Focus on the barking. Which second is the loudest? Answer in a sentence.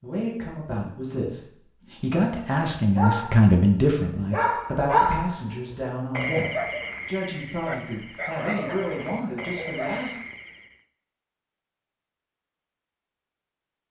The volume of the barking peaks at 5 seconds.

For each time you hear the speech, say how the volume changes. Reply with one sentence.
The speech can be heard from 0.0 to 10.2 s, getting louder then quieter.